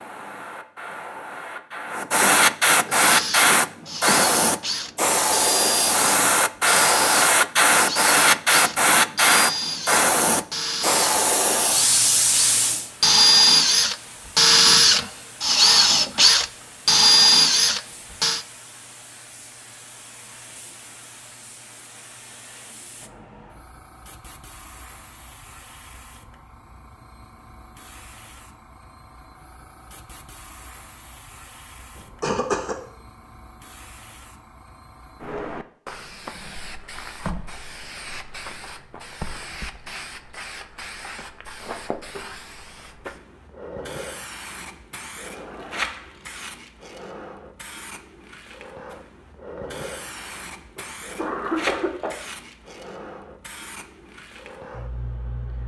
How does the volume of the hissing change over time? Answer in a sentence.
The volume of the hissing goes down, then up.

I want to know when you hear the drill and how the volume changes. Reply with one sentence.
You can hear the drill from 3.0 to 18.4 s, getting louder.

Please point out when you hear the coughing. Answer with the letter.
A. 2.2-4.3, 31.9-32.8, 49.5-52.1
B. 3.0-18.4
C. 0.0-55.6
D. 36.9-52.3
A.